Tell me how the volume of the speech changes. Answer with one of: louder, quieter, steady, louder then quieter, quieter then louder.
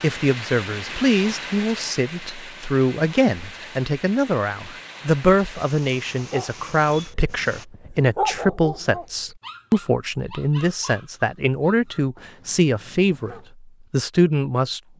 steady.